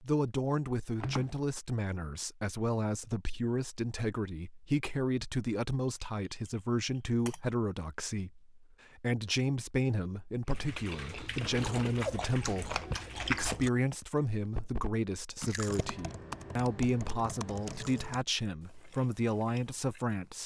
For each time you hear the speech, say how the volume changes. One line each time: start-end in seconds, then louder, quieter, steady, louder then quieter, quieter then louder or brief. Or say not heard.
0.0-20.4 steady.